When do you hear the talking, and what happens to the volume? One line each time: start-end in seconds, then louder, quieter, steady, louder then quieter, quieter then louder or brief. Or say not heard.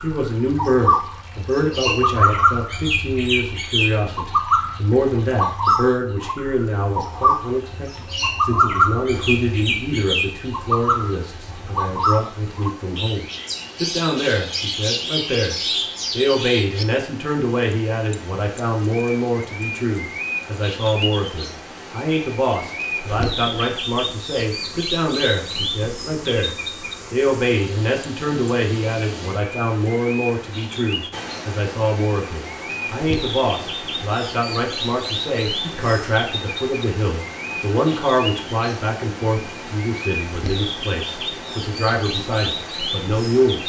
0.0-43.6 steady.